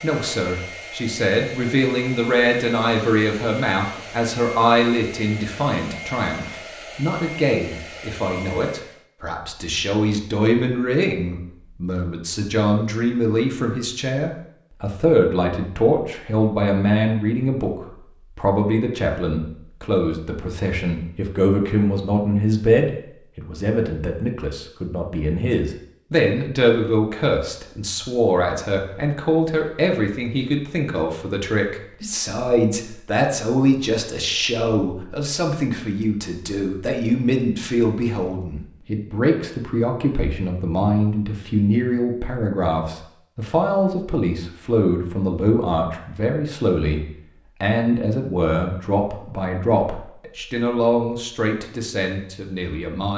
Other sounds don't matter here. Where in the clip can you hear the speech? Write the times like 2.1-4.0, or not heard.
0.0-53.1.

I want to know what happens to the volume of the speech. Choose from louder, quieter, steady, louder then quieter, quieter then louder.
steady.